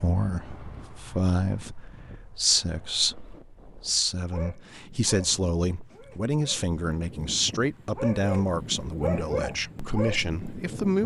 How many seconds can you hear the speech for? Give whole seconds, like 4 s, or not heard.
11 s.